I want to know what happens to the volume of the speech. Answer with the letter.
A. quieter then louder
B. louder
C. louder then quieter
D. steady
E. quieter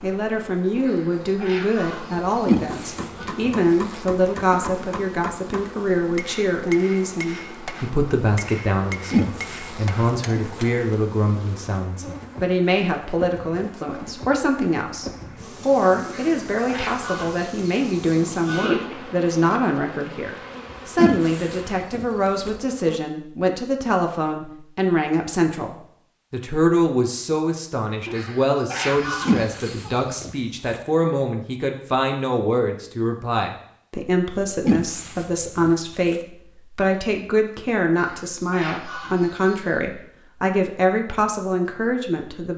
D.